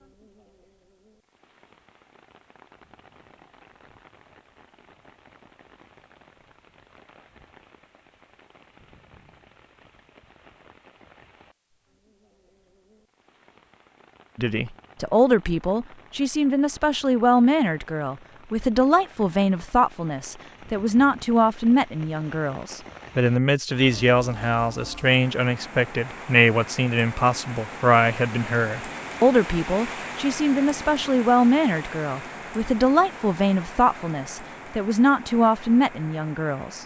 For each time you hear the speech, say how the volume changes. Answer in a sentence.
You can hear the speech from 14.3 to 36.8 s, at a steady volume.